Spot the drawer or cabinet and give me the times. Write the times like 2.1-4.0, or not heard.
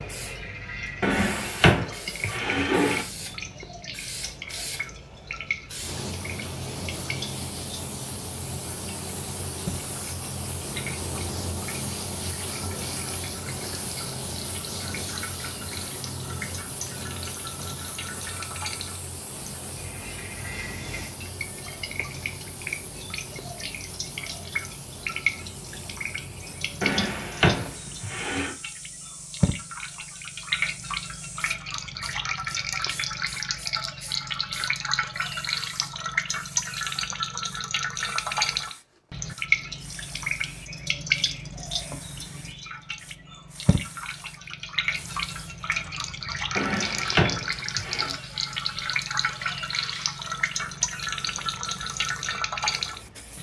1.0-3.0, 26.8-28.5, 46.5-48.1.